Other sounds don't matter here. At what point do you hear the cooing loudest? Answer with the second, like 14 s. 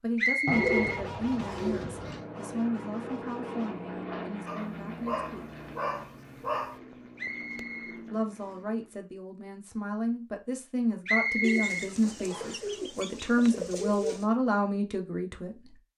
1 s.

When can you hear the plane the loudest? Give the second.
4 s.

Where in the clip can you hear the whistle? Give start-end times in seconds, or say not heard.
0.1-1.8, 7.2-8.6, 11.1-12.6.